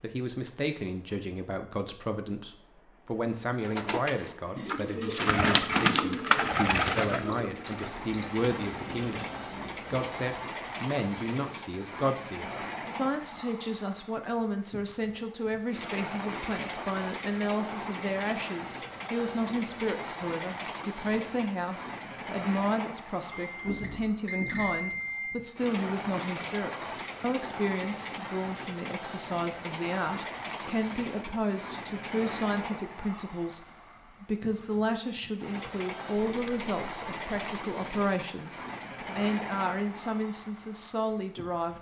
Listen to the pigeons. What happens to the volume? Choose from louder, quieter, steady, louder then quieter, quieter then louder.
louder then quieter.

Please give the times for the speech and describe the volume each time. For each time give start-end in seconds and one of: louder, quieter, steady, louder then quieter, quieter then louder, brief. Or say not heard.
0.0-9.2 steady
9.9-41.7 steady.